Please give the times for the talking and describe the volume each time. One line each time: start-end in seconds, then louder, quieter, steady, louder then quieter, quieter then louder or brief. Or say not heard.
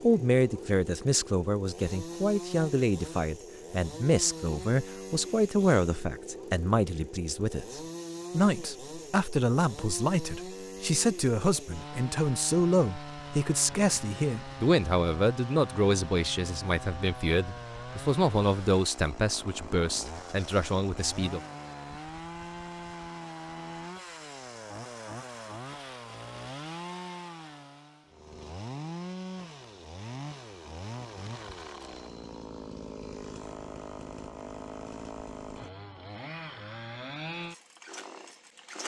0.0-21.4 steady.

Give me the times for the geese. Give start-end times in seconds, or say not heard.
not heard.